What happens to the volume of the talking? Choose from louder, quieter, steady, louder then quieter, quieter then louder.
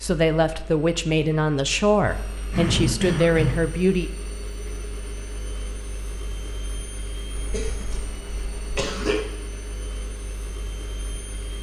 steady.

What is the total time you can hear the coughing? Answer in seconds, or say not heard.
3 s.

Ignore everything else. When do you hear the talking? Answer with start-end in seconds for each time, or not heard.
0.0-4.1.